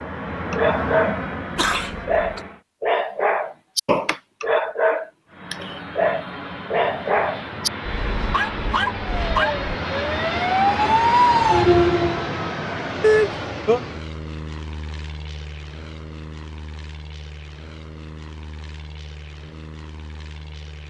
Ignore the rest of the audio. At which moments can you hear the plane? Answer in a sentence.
The plane can be heard from 0.0 to 2.6 s and from 5.2 to 20.8 s.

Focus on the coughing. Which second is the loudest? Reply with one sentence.
The loudest moment of the coughing is at 13 seconds.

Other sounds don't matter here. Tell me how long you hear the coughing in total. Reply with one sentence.
The coughing can be heard for 2 seconds in total.